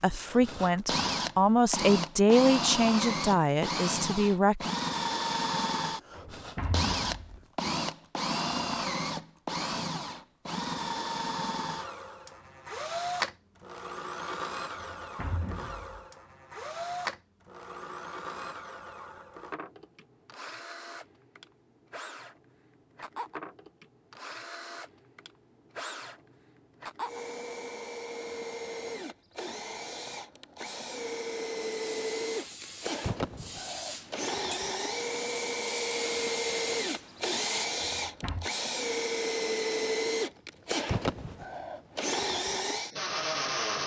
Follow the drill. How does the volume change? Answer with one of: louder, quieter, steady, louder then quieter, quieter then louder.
quieter then louder.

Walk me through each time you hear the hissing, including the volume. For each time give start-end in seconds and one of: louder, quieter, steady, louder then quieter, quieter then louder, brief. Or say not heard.
31.6-37.7 quieter then louder.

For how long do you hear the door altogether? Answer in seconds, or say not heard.
3 s.